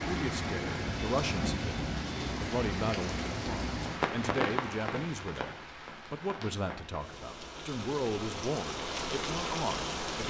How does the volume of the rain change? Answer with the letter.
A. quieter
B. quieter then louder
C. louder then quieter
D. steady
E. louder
B.